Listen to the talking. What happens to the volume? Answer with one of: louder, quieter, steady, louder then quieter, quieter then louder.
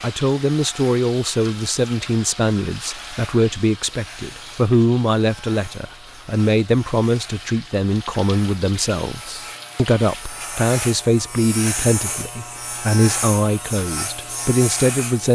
steady.